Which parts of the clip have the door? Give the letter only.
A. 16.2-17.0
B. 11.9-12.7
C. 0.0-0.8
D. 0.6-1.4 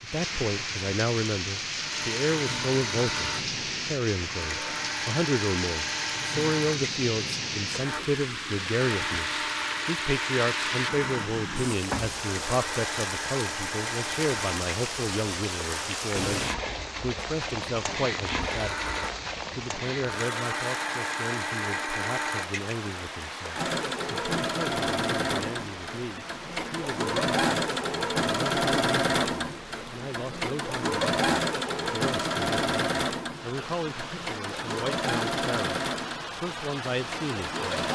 B.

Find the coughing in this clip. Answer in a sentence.
The coughing can't be heard in this clip.